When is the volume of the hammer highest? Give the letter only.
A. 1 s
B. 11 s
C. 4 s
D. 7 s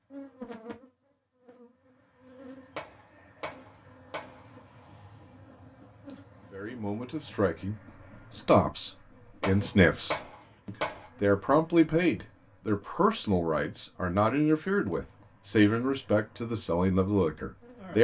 B.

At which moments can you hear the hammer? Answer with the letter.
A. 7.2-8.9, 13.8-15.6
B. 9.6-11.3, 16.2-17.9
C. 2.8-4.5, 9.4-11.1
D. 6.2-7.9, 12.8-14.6
C.